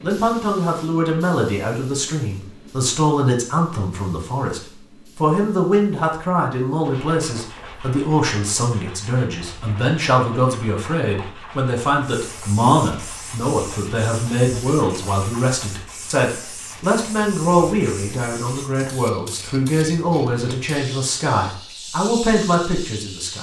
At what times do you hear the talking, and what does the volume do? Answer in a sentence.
You can hear the talking from 0.0 to 23.3 s, at a steady volume.